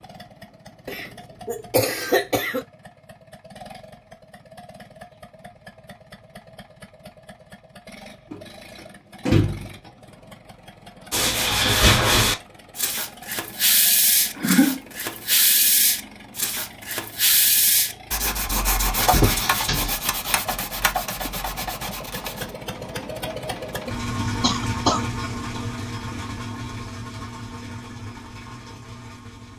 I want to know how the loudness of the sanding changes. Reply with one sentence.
The volume of the sanding goes down.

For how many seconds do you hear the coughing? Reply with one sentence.
The coughing can be heard for 3 seconds in total.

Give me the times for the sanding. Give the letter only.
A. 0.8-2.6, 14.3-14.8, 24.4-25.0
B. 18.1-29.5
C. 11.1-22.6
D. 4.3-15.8
C.